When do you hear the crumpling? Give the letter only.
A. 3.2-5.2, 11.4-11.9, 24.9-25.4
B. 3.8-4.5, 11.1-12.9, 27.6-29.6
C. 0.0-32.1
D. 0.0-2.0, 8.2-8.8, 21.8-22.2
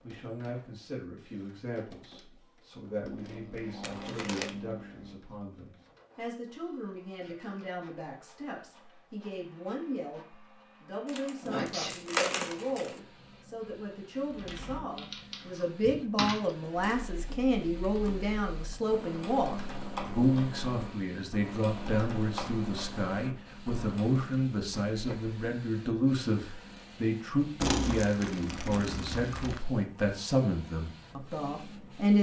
B.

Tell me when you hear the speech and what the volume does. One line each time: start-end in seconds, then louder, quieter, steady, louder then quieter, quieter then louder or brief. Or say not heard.
0.0-32.1 louder.